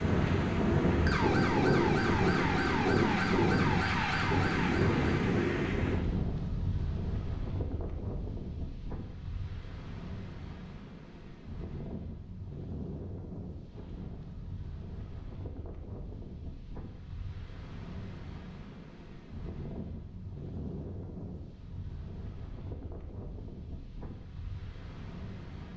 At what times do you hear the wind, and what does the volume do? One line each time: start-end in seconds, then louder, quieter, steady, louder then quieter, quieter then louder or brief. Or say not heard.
0.0-25.7 quieter.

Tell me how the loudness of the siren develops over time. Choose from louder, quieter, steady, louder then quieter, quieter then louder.
steady.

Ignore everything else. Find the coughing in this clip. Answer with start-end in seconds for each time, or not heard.
not heard.